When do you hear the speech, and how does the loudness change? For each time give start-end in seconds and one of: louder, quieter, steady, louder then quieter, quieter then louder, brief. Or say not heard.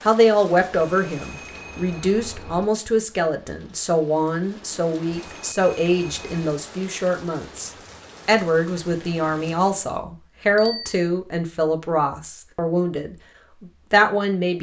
0.0-14.5 steady.